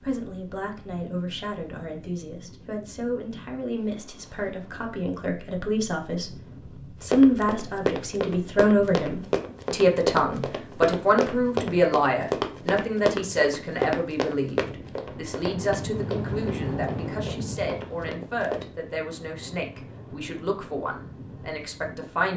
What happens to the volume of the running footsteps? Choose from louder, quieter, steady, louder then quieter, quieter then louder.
quieter.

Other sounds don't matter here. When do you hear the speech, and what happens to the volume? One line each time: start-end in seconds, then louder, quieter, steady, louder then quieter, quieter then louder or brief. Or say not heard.
0.0-22.3 louder then quieter.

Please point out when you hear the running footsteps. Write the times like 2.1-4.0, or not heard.
7.0-18.6.